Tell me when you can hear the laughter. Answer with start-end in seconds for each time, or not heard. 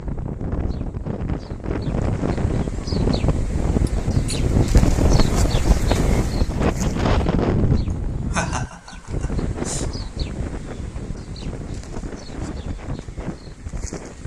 3.9-4.4, 7.9-10.1.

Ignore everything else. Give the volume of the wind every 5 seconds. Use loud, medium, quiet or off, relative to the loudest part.
loud, loud, medium.